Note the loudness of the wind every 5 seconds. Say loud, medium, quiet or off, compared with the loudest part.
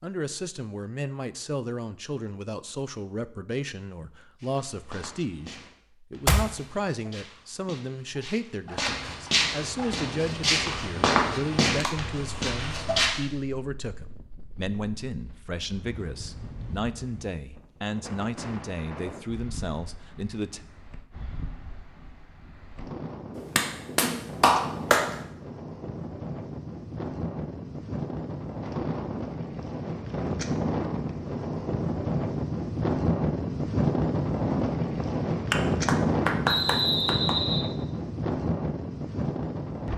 off, off, quiet, quiet, quiet, medium, loud, loud.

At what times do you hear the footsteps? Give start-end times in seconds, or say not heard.
4.3-13.1.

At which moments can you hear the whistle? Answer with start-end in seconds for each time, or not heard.
36.5-37.6.